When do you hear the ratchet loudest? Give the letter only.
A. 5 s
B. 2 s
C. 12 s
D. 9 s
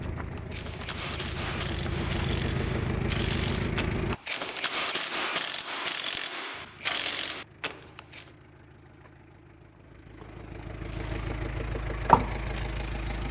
C.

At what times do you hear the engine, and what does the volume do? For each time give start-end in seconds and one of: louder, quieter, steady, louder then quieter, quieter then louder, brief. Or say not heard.
0.0-4.2 louder
6.5-13.2 louder.